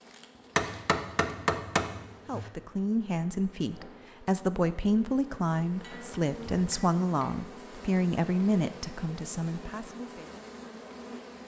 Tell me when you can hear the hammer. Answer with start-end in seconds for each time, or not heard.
0.6-2.5, 5.8-7.4.